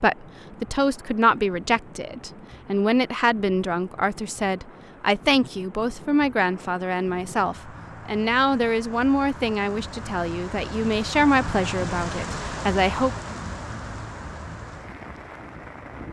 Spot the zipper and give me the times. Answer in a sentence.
You can't hear the zipper here.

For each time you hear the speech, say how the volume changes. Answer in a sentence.
You can hear the speech from 0.0 to 13.1 s, at a steady volume.